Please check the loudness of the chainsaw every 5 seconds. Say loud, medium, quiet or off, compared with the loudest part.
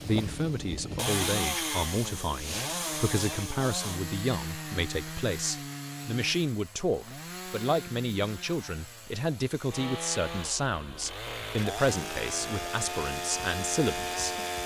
loud, medium, loud.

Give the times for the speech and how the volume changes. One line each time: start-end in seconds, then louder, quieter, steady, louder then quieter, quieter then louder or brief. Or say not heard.
0.0-14.3 steady.